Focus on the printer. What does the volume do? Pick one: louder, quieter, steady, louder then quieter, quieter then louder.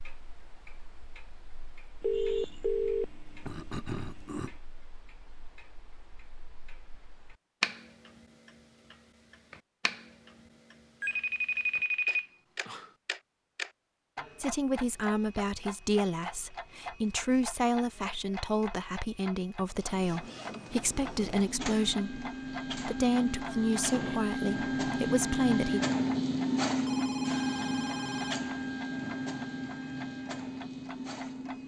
louder then quieter.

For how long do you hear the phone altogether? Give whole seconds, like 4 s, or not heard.
6 s.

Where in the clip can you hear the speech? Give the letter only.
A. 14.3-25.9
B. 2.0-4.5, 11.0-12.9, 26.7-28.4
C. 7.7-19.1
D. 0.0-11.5
A.